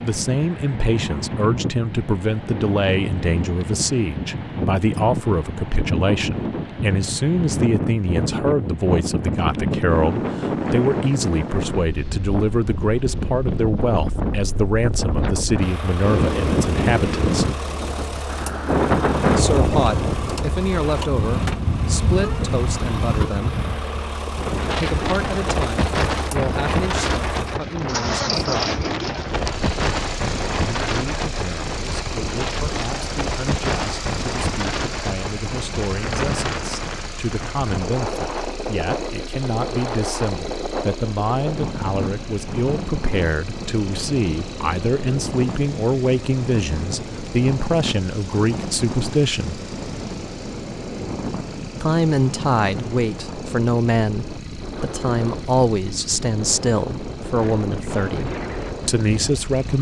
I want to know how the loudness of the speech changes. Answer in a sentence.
The volume of the speech goes down, then up.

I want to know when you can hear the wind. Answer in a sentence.
You can hear the wind from 0.0 to 59.7 s.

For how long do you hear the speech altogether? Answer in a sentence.
The speech can be heard for 53 seconds in total.